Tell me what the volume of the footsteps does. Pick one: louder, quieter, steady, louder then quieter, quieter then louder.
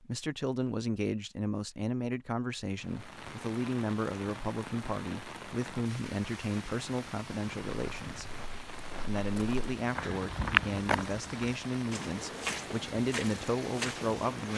louder then quieter.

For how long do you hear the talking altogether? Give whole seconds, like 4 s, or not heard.
14 s.